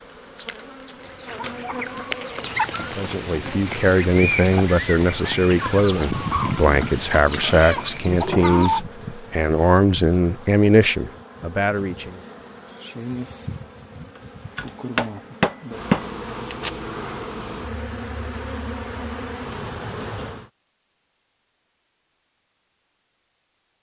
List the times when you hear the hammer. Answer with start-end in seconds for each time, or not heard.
14.6-16.1.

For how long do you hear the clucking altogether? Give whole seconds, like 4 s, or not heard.
8 s.